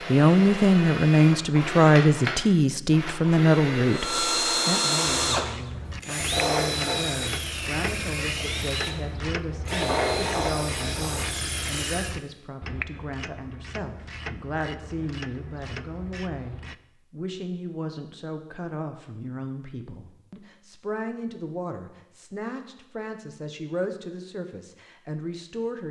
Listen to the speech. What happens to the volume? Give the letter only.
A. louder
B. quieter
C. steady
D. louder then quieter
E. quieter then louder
B.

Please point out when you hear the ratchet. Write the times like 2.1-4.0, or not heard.
5.3-16.8.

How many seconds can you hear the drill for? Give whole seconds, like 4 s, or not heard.
12 s.